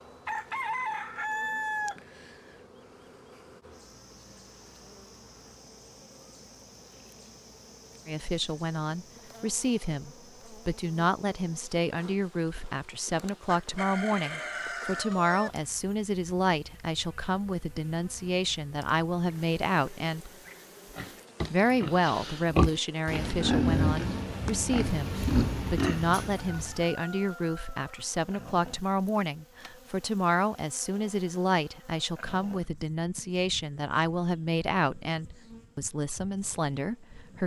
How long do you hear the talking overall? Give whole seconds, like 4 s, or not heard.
28 s.